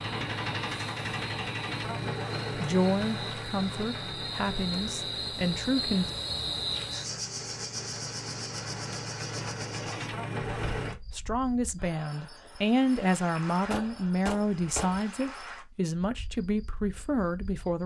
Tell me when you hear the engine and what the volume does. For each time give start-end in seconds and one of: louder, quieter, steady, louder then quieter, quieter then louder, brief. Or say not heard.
0.0-10.9 quieter then louder.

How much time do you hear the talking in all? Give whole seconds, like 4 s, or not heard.
10 s.